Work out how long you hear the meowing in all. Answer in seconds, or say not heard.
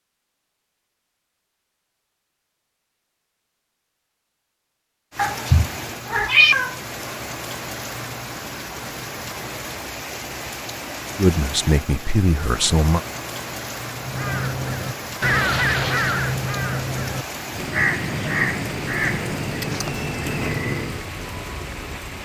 2 s.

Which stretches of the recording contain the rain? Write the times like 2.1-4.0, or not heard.
5.1-22.2.